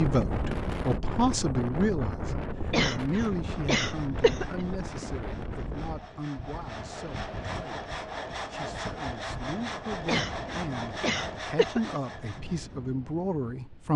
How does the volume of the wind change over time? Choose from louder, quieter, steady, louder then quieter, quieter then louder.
quieter.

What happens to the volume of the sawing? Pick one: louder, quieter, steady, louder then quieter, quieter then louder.
louder.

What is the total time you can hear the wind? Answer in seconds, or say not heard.
14 s.